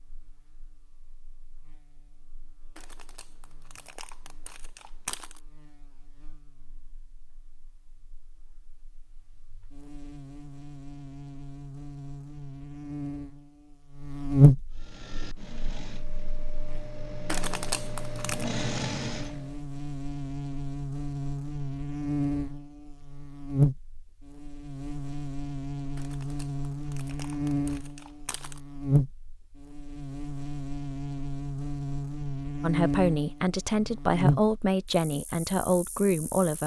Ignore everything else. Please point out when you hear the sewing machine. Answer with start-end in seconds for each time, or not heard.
14.7-19.6.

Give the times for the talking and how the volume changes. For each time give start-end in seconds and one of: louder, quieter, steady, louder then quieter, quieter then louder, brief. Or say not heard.
32.6-36.6 steady.